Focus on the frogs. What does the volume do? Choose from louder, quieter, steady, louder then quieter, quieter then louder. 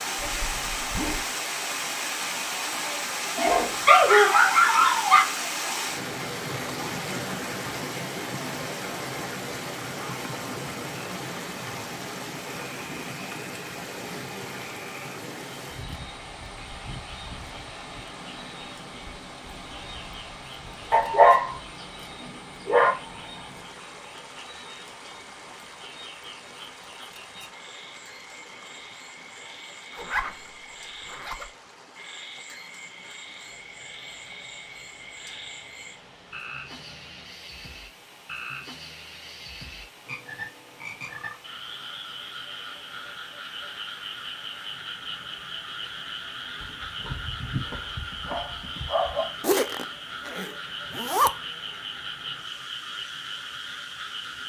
louder.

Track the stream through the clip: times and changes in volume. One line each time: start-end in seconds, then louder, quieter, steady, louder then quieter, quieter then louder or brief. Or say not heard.
0.0-54.4 quieter.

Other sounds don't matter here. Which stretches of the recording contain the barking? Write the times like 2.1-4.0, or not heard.
3.4-5.2, 20.9-22.9, 46.6-49.3.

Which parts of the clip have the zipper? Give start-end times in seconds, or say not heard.
0.1-1.2, 29.9-31.5, 49.4-51.3.